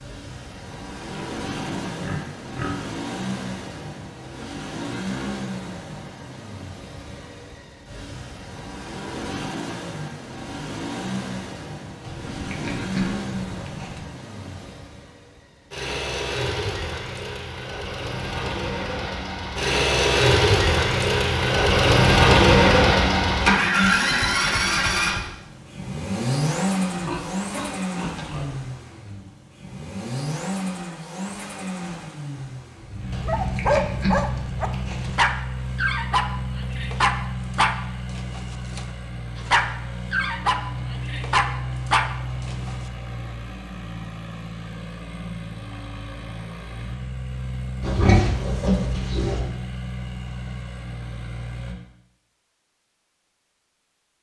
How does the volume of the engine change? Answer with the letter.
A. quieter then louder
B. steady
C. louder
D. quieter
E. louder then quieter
E.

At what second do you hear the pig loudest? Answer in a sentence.
The volume of the pig peaks at 48 seconds.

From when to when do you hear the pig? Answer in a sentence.
You can hear the pig from 1.1 to 2.9 s, from 12.0 to 14.1 s, from 26.9 to 28.6 s, from 33.1 to 35.1 s and from 47.8 to 49.4 s.